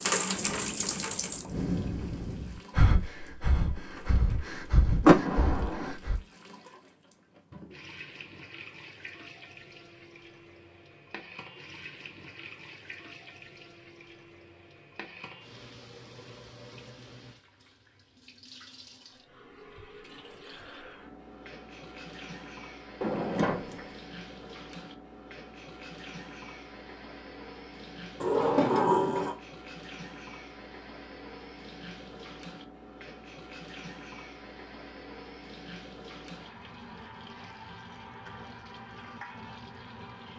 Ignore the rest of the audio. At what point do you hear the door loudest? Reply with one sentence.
The loudest moment of the door is at 5 seconds.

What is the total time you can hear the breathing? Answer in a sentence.
You can hear the breathing for 6 seconds altogether.